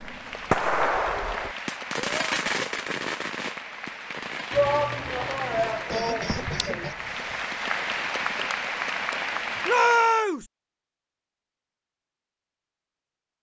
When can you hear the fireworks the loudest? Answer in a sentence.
The loudest moment of the fireworks is at 1 second.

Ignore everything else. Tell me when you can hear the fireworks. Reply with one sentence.
You can hear the fireworks from 0.1 to 8.7 s.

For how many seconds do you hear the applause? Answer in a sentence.
The applause can be heard for 10 seconds in total.